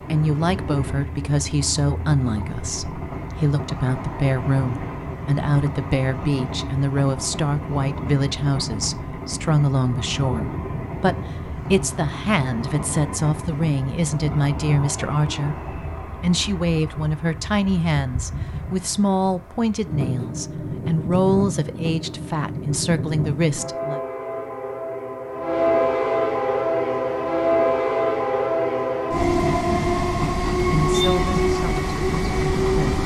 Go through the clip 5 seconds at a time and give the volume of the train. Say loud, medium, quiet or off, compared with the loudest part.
medium, medium, medium, quiet, medium, loud, loud.